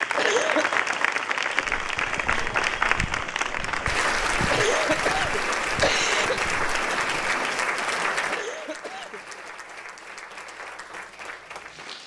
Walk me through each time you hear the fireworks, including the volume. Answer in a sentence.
You can't hear the fireworks here.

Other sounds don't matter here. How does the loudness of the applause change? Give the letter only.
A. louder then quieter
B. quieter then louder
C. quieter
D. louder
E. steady
C.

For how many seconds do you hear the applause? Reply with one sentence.
The applause can be heard for 12 seconds in total.